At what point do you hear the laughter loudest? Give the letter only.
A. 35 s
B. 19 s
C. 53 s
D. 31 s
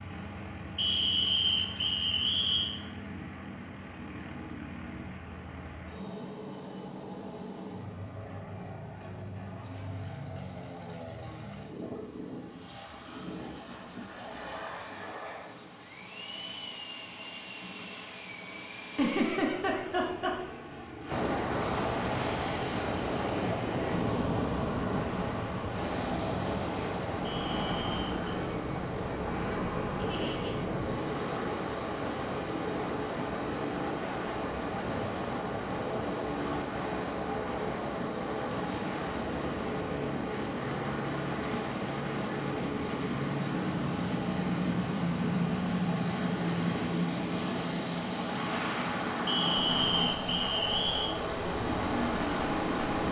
B.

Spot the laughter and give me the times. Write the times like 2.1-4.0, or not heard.
18.9-20.6, 29.9-30.6.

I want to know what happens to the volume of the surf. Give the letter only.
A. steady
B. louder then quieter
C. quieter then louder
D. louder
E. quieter
E.